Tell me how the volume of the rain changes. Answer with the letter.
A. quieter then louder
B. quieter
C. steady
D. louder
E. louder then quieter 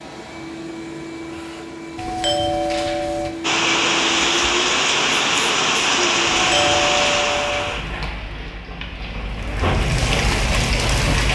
A.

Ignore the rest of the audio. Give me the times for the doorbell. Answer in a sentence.
You can hear the doorbell from 1.9 to 3.4 s and from 6.2 to 7.8 s.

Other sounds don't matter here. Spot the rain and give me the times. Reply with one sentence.
The rain can be heard from 3.4 to 11.3 s.